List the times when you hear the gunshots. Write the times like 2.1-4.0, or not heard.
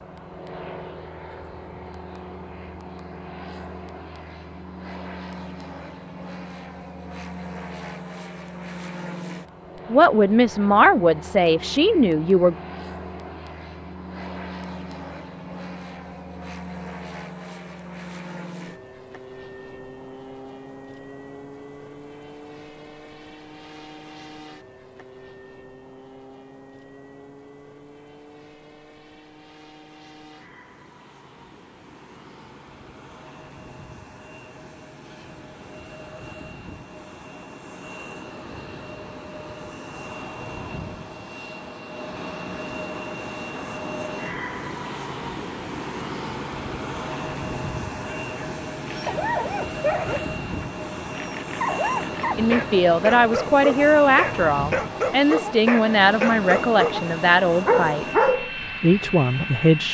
not heard.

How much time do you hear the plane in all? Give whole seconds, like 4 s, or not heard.
60 s.